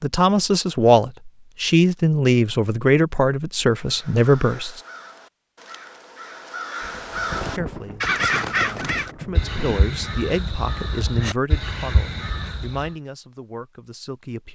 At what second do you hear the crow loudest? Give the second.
8 s.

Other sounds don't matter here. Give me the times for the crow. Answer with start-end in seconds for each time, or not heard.
3.7-12.9.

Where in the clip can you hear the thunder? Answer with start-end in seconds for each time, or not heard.
6.8-9.8.